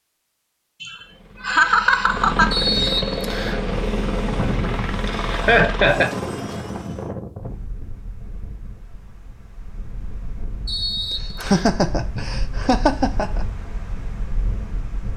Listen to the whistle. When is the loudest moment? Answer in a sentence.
The loudest moment of the whistle is at 3 seconds.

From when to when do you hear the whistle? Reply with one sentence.
You can hear the whistle from 2.5 to 3.6 s and from 10.7 to 11.7 s.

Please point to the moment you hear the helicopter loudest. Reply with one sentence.
The loudest moment of the helicopter is at 3 seconds.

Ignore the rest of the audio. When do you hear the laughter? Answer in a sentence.
You can hear the laughter from 0.8 to 2.9 s, from 5.3 to 6.1 s and from 10.9 to 13.4 s.